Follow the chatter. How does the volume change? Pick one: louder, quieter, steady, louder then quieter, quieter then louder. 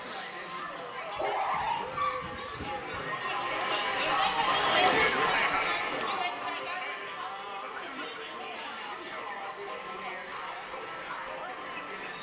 louder then quieter.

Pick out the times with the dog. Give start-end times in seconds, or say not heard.
1.1-3.0.